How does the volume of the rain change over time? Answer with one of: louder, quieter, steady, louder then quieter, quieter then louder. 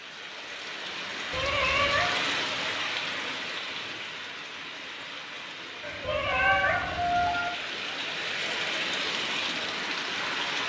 quieter then louder.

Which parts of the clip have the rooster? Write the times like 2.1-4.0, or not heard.
5.8-7.5.